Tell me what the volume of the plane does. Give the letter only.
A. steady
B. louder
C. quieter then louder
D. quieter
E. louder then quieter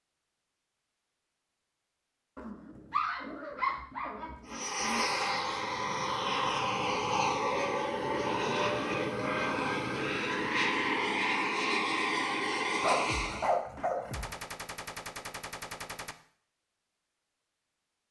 A.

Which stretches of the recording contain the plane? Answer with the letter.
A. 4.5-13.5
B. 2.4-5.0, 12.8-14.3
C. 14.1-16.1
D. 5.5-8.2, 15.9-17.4
A.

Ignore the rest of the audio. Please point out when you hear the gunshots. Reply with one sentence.
You can hear the gunshots from 14.1 to 16.1 s.